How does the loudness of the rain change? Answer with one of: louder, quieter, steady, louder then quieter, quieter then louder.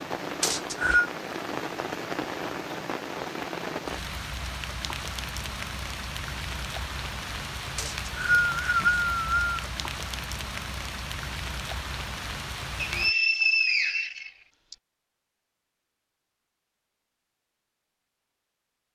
steady.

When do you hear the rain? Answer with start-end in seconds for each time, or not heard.
0.0-13.2.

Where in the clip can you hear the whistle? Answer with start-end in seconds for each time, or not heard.
0.4-1.1, 7.8-9.6, 12.8-14.8.